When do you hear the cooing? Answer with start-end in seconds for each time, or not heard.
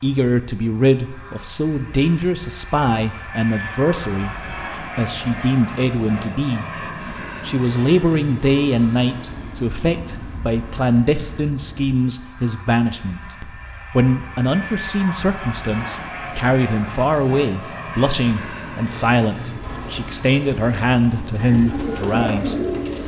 19.6-23.0.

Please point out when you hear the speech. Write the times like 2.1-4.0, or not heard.
0.0-6.7, 7.5-13.2, 13.9-22.6.